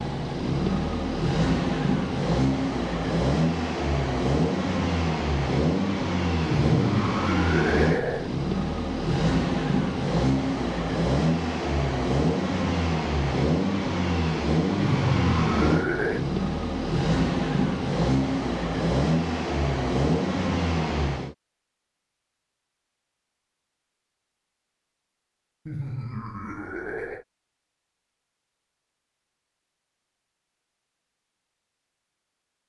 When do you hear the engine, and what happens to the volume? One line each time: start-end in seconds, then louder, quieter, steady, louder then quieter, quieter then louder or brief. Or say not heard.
0.0-21.4 steady.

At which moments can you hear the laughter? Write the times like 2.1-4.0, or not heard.
6.5-8.3, 14.8-16.2, 25.6-27.2.